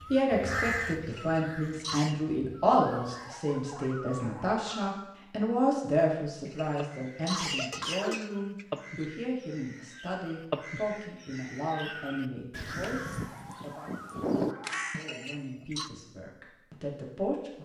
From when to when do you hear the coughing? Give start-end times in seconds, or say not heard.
1.0-2.1, 6.5-9.1, 14.9-15.9.